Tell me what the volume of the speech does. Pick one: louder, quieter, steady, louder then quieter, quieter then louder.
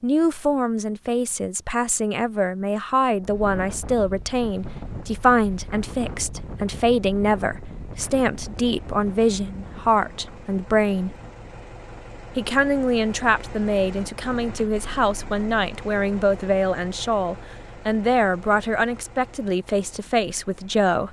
steady.